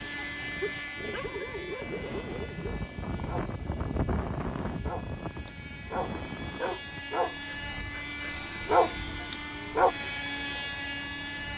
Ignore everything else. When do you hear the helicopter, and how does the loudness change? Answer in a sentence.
The helicopter can be heard from 0.0 to 11.5 s, getting quieter then louder.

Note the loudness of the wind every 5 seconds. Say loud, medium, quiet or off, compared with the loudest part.
loud, loud, off.